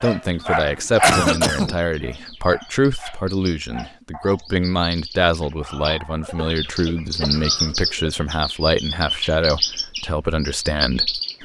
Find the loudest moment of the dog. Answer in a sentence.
The volume of the dog peaks at 1 second.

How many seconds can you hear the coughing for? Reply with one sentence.
You can hear the coughing for 3 seconds altogether.